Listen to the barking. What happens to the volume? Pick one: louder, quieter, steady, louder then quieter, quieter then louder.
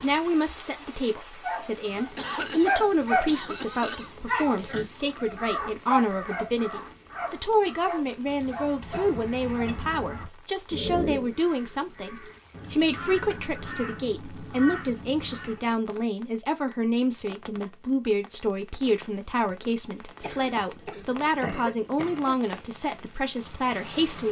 quieter.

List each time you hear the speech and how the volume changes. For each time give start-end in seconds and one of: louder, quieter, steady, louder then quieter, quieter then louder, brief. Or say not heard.
0.0-24.2 steady.